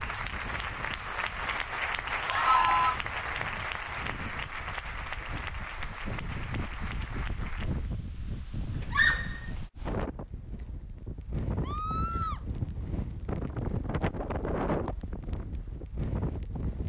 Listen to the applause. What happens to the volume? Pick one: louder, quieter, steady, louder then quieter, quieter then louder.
quieter.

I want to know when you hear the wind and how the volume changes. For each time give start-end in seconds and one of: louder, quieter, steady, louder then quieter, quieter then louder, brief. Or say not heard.
0.0-16.8 louder.